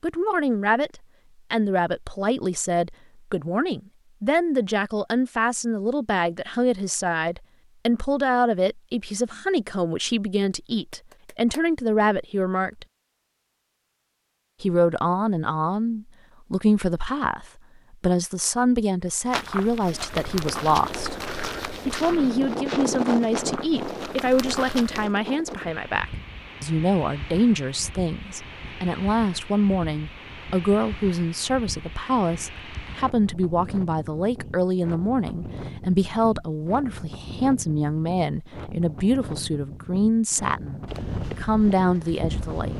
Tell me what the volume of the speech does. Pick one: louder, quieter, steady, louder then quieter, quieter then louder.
steady.